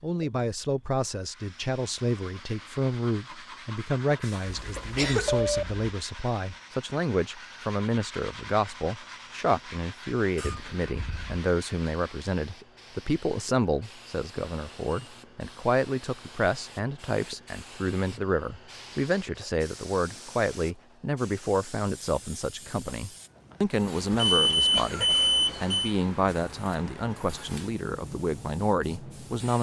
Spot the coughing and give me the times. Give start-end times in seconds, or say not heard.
4.2-5.4, 10.3-11.4, 24.6-25.7.